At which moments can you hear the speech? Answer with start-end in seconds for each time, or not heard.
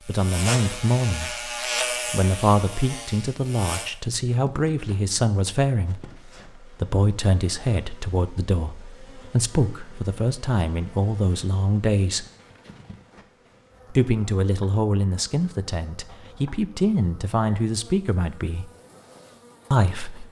0.1-1.5, 2.1-12.2, 13.9-18.7, 19.7-20.2.